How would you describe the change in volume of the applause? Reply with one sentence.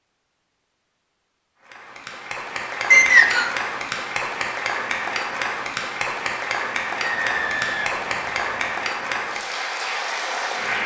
The volume of the applause stays about the same.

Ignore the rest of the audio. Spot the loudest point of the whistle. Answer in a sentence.
The volume of the whistle peaks at 3 seconds.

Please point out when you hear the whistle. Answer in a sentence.
You can hear the whistle from 2.9 to 3.5 s and from 7.0 to 8.7 s.